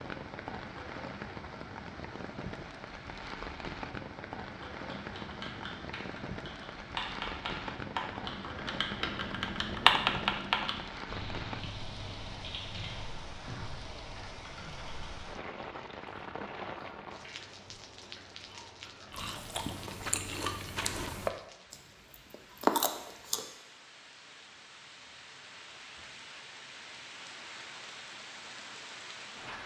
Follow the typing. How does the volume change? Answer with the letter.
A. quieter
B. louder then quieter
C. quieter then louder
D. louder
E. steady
B.